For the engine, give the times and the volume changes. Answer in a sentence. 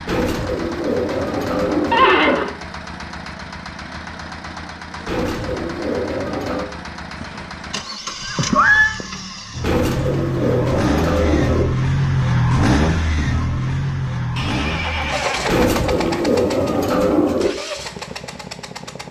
You can hear the engine from 0.0 to 19.0 s, getting louder then quieter.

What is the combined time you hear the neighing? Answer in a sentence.
The neighing can be heard for 4 seconds in total.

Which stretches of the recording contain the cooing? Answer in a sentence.
The cooing can be heard from 0.1 to 2.1 s, from 5.0 to 6.7 s, from 9.6 to 11.7 s and from 15.4 to 17.5 s.